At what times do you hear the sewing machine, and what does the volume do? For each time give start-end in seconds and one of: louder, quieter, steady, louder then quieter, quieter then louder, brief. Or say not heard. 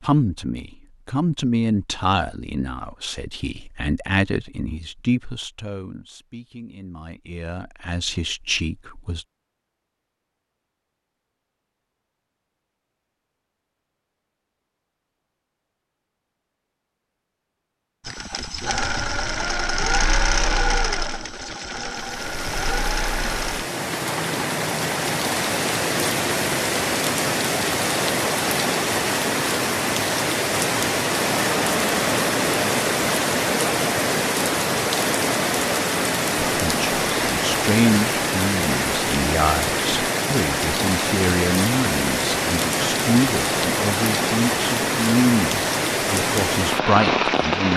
18.1-26.8 quieter.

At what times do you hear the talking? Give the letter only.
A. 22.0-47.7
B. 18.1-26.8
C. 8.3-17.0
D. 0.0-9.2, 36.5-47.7
D.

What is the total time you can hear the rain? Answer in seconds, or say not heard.
26 s.